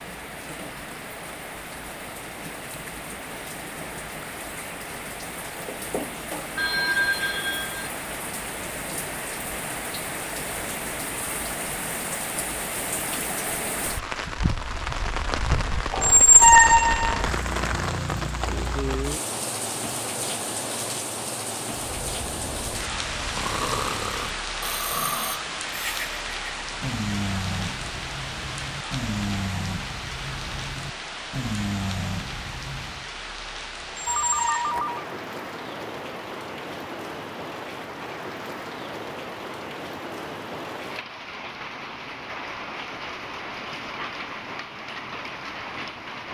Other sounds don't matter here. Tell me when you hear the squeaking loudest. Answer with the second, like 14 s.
16 s.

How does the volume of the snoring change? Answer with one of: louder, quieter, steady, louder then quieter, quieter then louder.
steady.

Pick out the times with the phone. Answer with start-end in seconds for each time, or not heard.
6.5-7.9, 34.0-35.0.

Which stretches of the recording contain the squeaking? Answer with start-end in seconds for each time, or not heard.
15.9-17.2, 33.9-34.8.